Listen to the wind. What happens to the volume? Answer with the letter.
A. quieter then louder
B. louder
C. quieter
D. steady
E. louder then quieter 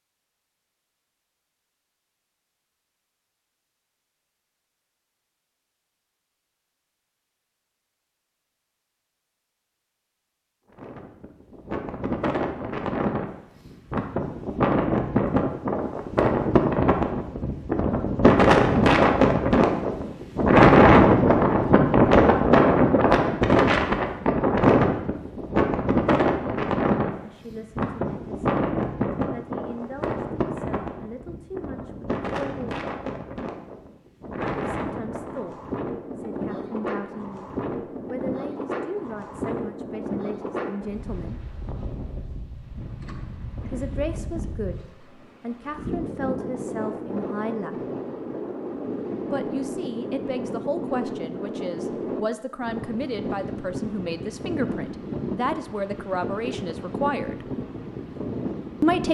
C.